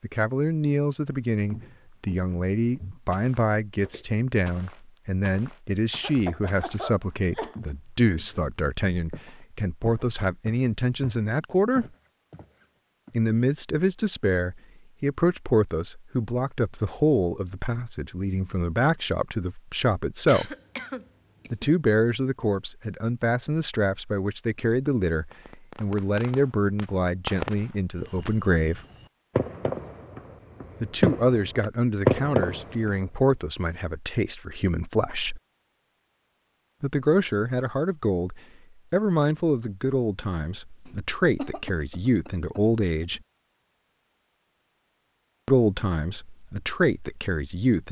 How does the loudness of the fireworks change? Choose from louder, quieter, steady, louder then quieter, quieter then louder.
louder.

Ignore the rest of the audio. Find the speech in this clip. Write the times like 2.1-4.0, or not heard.
0.0-11.8, 13.1-20.6, 21.5-28.8, 30.8-35.4, 36.8-43.2, 45.5-47.8.